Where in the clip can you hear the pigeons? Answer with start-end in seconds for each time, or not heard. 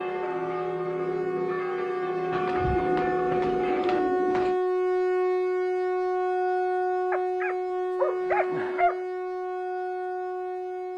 2.3-4.6.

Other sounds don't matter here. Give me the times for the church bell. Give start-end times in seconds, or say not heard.
0.0-4.0.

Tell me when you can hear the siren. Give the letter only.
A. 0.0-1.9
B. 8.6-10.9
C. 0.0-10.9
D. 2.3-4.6
C.